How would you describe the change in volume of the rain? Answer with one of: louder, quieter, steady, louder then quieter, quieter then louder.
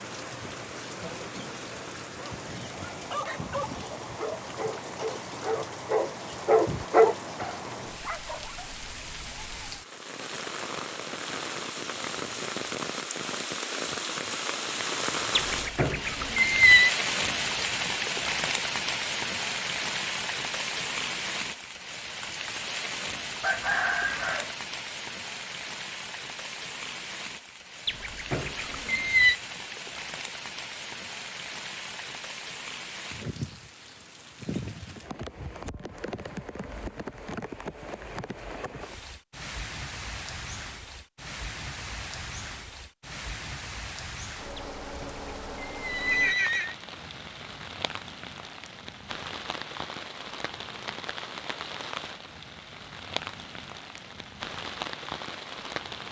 louder then quieter.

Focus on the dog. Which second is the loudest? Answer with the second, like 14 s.
7 s.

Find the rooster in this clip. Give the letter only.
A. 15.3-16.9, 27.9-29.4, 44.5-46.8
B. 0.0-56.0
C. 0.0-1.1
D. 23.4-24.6
D.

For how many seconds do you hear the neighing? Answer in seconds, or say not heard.
5 s.